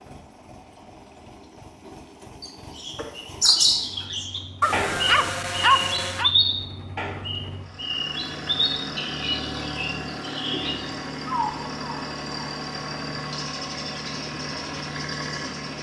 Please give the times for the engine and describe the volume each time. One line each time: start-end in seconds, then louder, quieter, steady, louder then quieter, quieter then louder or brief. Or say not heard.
0.0-15.7 louder.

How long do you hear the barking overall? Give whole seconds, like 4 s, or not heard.
2 s.